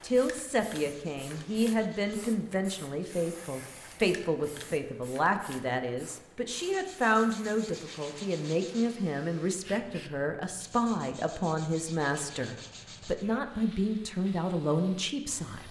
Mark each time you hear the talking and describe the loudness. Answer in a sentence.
The talking can be heard from 0.0 to 15.6 s, at a steady volume.